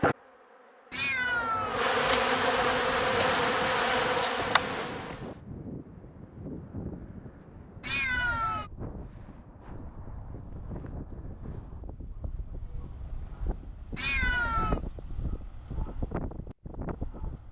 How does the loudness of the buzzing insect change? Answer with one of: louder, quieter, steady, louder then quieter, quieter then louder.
louder.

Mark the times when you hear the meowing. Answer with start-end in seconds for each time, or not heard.
0.9-2.8, 7.8-8.7, 13.9-14.8.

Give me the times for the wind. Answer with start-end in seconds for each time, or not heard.
2.7-17.4.